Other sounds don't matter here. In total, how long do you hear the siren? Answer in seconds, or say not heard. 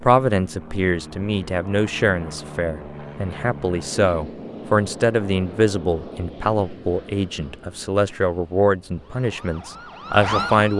2 s.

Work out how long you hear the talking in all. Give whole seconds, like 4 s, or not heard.
11 s.